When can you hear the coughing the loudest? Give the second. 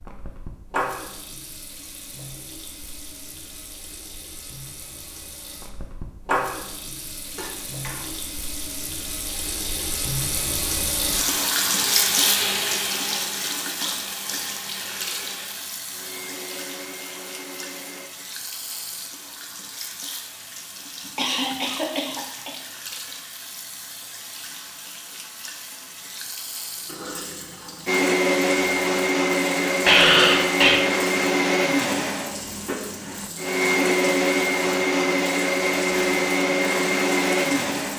30 s.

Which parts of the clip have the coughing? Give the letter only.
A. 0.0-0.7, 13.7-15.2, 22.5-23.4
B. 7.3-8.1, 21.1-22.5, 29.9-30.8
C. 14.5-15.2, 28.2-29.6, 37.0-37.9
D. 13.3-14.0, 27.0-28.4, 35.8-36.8
B.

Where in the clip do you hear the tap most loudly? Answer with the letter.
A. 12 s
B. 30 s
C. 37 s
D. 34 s
A.